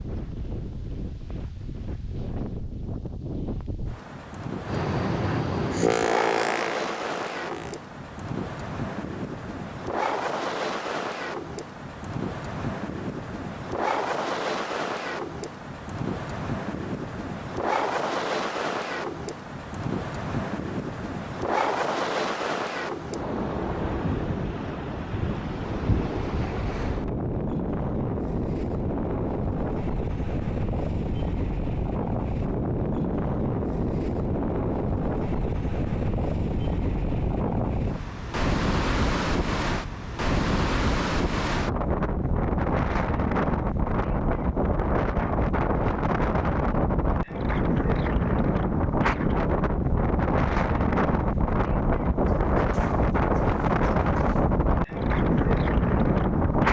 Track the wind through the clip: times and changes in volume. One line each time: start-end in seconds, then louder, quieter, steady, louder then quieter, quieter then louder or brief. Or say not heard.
0.0-56.6 louder.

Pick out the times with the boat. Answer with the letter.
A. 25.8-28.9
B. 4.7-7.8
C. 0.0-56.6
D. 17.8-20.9
B.